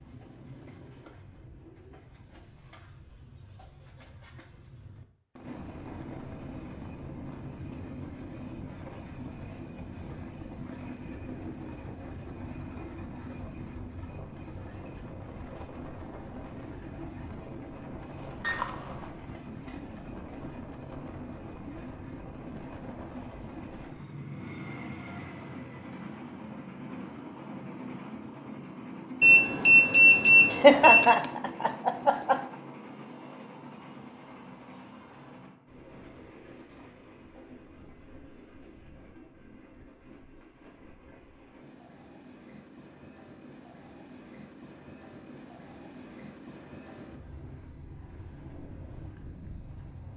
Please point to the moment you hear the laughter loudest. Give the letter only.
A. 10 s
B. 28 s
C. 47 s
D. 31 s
D.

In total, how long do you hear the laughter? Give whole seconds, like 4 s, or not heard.
2 s.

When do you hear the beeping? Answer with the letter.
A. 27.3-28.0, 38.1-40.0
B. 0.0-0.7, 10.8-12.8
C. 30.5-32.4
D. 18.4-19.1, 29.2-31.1
D.